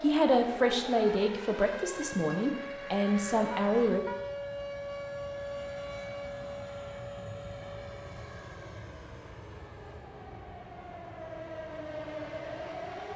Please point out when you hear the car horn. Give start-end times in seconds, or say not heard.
3.5-4.2.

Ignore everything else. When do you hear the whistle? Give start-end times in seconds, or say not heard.
not heard.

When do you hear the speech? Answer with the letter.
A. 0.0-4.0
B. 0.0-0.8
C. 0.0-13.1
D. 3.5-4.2
A.